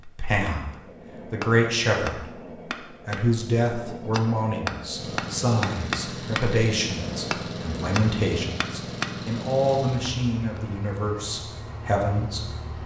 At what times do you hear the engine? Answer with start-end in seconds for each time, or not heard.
4.9-12.8.